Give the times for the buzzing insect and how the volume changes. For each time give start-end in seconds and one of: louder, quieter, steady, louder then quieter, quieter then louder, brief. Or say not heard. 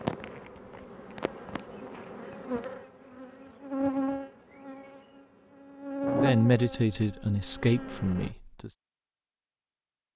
0.0-8.3 louder then quieter.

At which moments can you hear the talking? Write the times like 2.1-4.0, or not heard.
6.1-8.7.